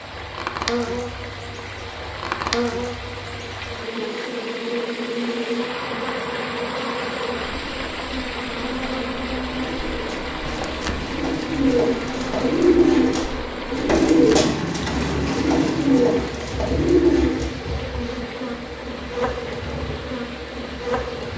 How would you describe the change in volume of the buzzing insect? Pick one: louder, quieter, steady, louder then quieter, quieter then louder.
steady.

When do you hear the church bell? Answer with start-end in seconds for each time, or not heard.
not heard.